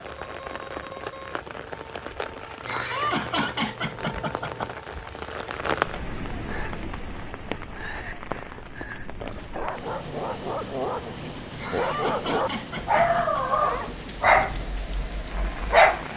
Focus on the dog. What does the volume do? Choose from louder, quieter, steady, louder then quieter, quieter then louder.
louder then quieter.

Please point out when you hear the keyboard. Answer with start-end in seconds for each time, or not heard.
not heard.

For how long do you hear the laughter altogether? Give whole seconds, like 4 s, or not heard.
4 s.